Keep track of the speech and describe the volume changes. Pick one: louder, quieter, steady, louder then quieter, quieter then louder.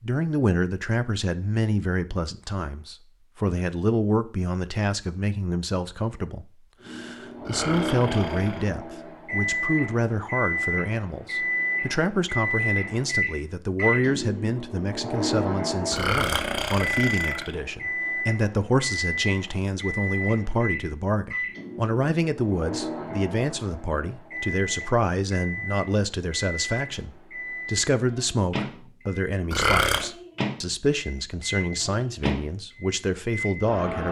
steady.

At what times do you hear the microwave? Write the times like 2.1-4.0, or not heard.
6.8-34.0.